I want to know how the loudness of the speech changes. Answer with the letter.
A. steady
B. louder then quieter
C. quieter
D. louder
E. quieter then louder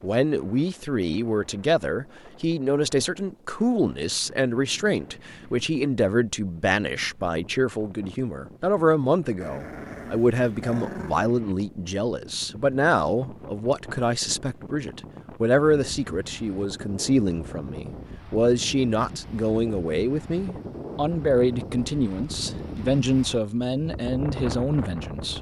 A.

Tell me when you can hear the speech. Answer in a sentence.
The speech can be heard from 0.0 to 25.3 s.